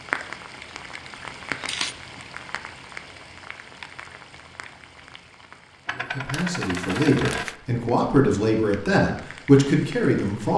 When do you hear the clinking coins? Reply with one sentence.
You can hear the clinking coins from 1.5 to 1.9 s and from 5.8 to 7.5 s.